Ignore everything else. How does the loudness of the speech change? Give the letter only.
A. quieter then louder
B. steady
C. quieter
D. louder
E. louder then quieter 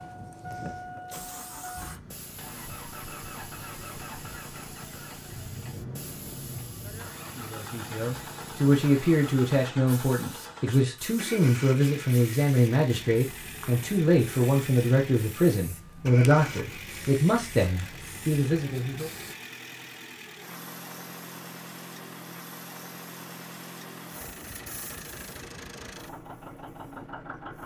B.